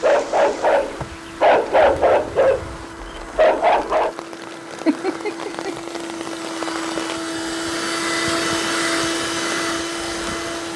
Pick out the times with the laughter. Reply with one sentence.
The laughter can be heard from 4.8 to 5.8 s.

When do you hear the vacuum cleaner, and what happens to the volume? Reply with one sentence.
You can hear the vacuum cleaner from 0.0 to 10.7 s, getting louder.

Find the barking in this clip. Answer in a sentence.
The barking can be heard from 0.0 to 4.2 s.